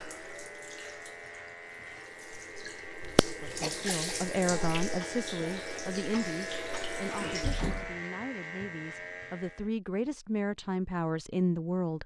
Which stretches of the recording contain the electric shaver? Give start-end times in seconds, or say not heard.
0.0-9.7.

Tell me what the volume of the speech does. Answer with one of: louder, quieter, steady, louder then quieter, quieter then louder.
quieter then louder.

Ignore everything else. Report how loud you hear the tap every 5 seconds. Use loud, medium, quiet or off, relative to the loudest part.
loud, loud, off.